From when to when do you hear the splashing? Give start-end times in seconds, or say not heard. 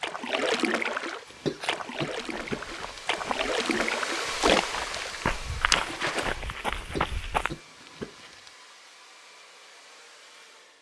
0.0-6.4.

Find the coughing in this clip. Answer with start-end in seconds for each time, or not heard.
1.2-3.0, 6.8-8.5.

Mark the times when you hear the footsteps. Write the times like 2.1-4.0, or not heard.
1.2-7.5.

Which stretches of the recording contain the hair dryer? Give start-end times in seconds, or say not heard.
0.0-10.7.